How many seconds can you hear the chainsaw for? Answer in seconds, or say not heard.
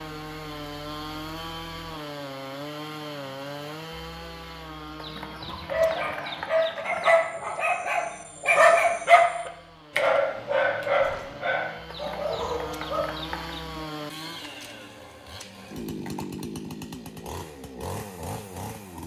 19 s.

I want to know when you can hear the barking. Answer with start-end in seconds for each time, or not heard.
5.6-13.1.